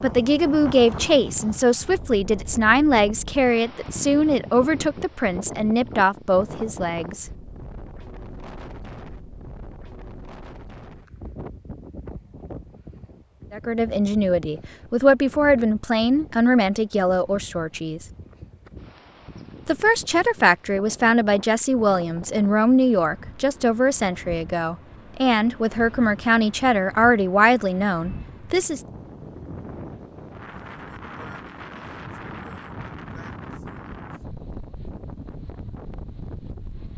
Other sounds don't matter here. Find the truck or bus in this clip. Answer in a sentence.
You can't hear the truck or bus here.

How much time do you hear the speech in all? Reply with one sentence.
You can hear the speech for 21 seconds altogether.